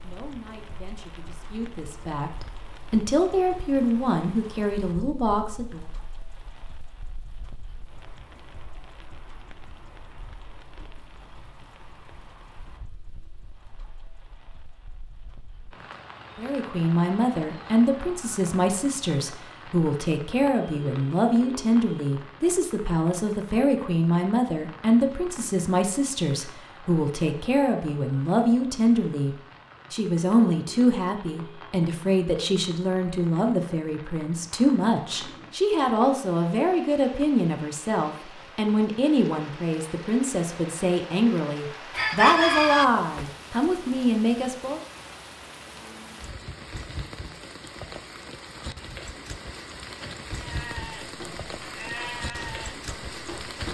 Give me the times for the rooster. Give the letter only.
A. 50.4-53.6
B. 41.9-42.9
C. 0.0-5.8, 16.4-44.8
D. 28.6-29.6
B.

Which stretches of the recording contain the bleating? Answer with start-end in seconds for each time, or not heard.
50.4-53.6.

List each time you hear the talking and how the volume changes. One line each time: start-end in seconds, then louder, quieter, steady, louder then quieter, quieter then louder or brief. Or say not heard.
0.0-5.8 louder
16.4-44.8 steady.